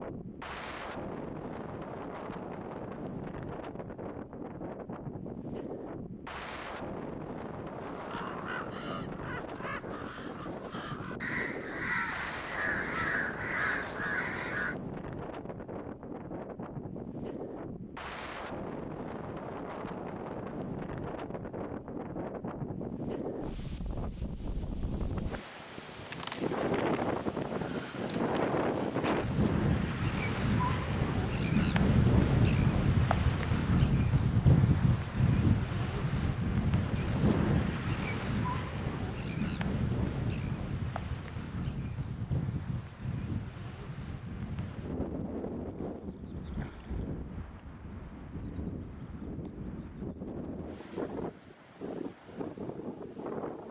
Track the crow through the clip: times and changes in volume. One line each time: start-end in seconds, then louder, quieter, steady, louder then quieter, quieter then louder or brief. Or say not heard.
7.8-14.8 louder.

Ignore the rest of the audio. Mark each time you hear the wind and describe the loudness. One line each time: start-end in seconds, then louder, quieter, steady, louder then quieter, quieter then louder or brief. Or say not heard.
0.0-53.6 louder then quieter.